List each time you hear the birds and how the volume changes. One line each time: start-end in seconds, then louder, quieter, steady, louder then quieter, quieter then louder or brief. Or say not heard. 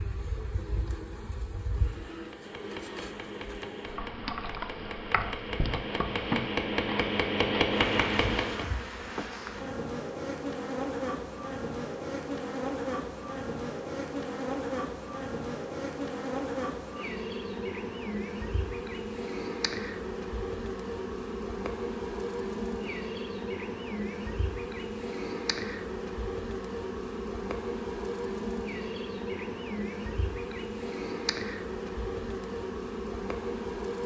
not heard.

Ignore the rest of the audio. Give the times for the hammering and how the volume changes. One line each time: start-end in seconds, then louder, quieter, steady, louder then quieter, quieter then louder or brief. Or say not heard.
2.1-8.7 louder.